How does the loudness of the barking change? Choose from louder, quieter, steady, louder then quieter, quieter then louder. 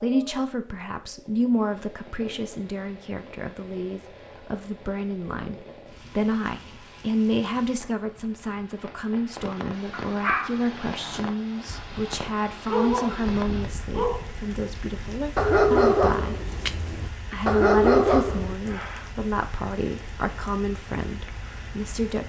louder.